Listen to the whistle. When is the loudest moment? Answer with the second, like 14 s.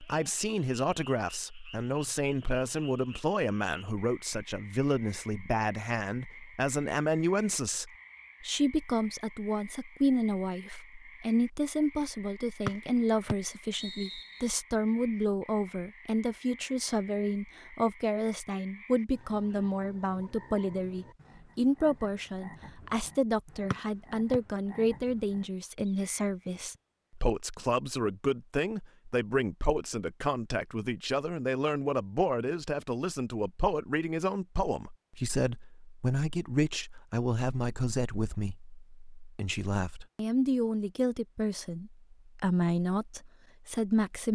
13 s.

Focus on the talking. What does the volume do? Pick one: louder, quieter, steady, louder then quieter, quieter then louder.
steady.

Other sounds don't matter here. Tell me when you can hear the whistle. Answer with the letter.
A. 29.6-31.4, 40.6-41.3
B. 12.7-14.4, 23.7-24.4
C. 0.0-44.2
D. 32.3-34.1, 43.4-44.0
B.